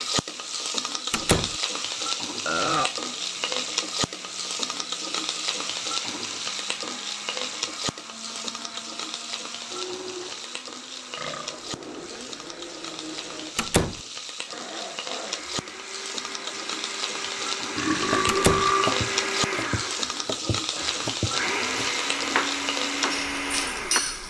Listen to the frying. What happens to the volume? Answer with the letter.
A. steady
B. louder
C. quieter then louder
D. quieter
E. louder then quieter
C.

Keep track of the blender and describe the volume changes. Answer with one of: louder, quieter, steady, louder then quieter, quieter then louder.
louder.